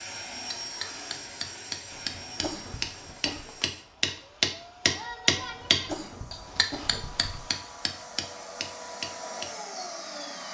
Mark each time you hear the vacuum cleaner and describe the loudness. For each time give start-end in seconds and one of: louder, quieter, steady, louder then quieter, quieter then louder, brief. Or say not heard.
0.0-10.5 quieter then louder.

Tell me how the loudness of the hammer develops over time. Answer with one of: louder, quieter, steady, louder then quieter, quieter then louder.
louder then quieter.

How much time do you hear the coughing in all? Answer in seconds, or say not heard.
4 s.